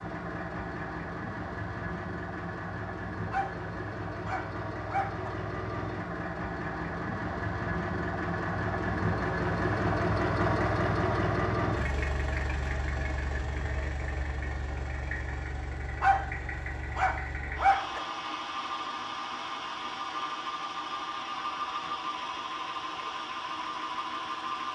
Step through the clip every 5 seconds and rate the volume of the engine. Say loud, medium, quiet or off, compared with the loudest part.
medium, loud, loud, medium, loud.